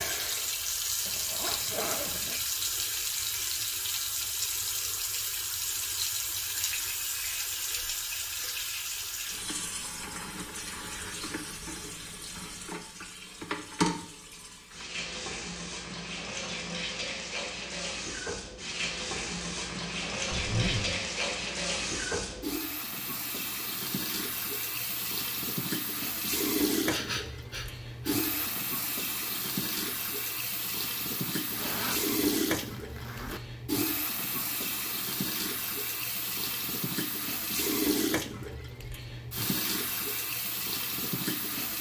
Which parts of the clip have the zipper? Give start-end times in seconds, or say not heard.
1.1-2.4, 20.3-21.0, 31.5-33.4.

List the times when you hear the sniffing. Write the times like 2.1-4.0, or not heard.
26.9-28.6.